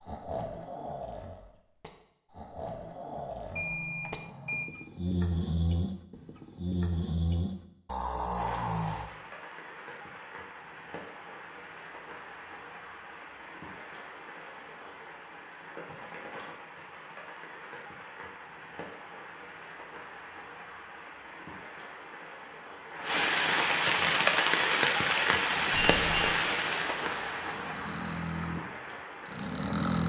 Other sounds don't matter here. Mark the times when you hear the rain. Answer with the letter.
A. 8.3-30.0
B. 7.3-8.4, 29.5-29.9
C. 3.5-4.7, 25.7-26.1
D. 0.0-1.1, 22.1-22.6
A.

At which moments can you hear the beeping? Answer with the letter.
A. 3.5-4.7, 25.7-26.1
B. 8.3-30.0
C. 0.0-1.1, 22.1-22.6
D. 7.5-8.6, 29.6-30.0
A.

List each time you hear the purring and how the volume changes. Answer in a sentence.
The purring can't be heard in this clip.